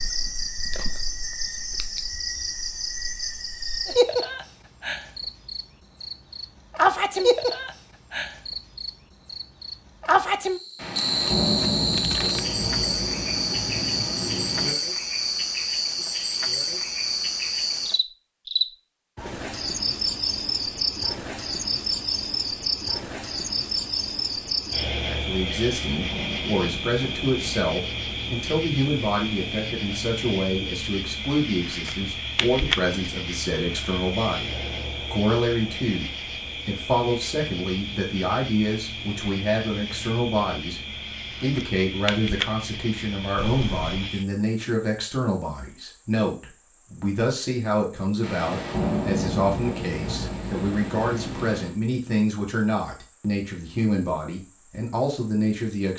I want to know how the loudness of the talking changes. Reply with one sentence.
The loudness of the talking stays about the same.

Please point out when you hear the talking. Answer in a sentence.
You can hear the talking from 25.1 to 34.5 s, from 35.1 to 40.8 s and from 41.4 to 55.9 s.